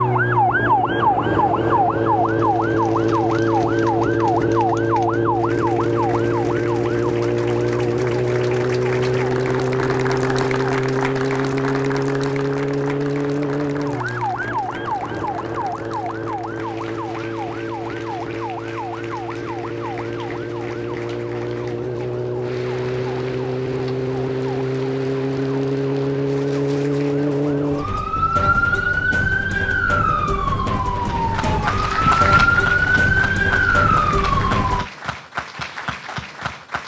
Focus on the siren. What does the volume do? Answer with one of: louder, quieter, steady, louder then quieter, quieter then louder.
quieter then louder.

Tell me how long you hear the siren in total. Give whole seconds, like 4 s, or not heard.
35 s.